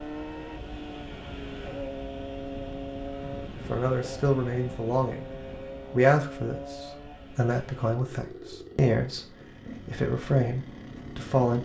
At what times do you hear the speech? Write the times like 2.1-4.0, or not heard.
3.5-5.2, 5.8-11.6.